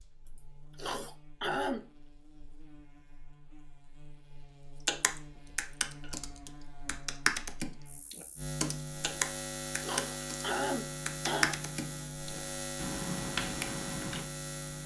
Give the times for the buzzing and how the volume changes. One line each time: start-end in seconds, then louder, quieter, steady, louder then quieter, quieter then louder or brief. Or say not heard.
0.0-14.8 louder.